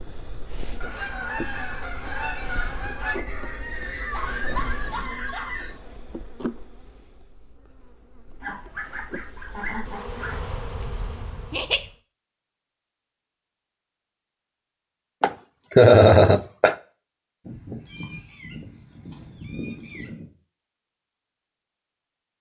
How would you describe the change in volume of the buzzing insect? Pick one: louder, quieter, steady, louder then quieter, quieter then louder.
quieter then louder.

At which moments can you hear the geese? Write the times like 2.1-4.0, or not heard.
0.8-3.1, 8.4-10.4, 17.4-20.3.